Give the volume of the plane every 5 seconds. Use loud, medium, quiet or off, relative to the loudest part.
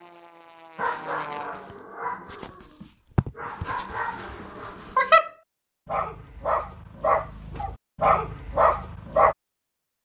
loud, off.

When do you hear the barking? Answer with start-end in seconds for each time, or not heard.
0.8-9.3.